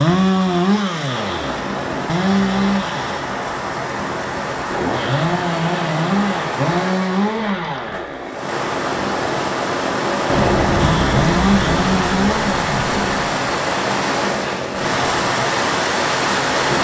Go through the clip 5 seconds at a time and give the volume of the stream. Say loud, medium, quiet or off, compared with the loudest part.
medium, medium, loud, loud.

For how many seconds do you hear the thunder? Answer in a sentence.
The thunder can be heard for 3 seconds in total.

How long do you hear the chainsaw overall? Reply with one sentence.
The chainsaw can be heard for 17 seconds in total.